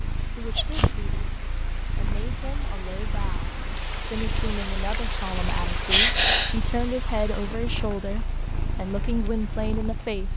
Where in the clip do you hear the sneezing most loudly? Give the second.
6 s.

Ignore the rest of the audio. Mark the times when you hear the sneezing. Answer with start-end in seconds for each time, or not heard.
0.4-1.0, 5.9-6.5.